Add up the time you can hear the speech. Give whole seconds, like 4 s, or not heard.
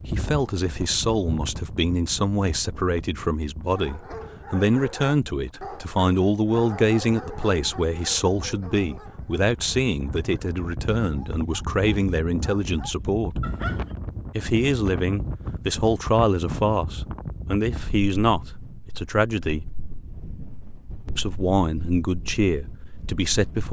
21 s.